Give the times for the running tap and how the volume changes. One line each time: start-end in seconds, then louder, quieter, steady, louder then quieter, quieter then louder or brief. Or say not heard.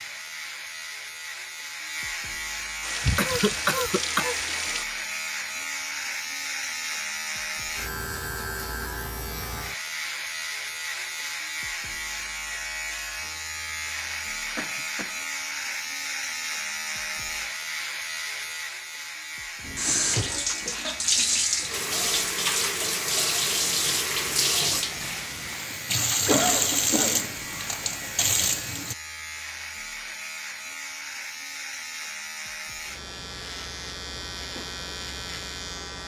2.8-4.8 brief
19.6-28.9 steady.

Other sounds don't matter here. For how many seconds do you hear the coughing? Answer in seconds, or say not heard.
3 s.